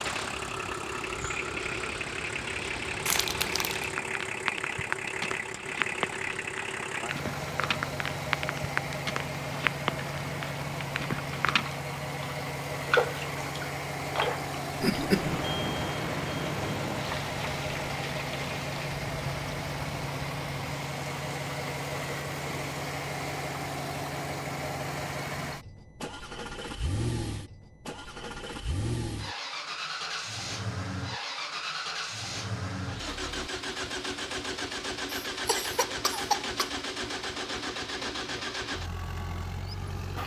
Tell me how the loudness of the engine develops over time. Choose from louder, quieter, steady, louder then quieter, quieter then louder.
steady.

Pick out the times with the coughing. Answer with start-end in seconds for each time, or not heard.
3.0-3.9, 14.8-15.4, 35.2-36.7.